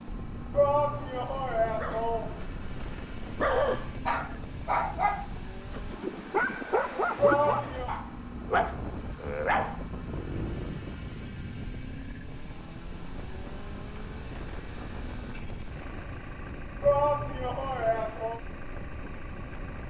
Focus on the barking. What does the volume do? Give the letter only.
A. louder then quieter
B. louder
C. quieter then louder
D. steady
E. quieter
D.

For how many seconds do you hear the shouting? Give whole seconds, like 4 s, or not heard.
4 s.